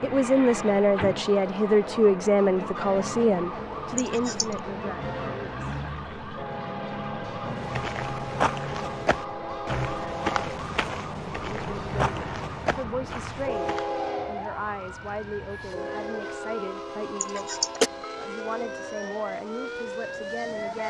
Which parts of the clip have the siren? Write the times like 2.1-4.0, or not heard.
0.0-20.8.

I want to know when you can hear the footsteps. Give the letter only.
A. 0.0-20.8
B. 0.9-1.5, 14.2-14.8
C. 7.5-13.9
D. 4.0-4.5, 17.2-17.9
C.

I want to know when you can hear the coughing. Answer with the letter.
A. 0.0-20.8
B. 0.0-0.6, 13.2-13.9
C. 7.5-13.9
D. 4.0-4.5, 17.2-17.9
D.